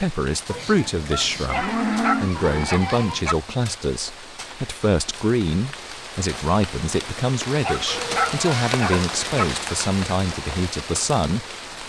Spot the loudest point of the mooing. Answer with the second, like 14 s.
2 s.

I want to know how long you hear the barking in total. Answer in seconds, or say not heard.
4 s.